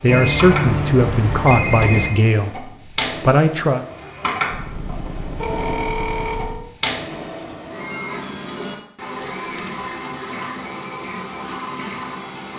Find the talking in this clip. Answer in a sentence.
You can hear the talking from 0.0 to 3.9 s.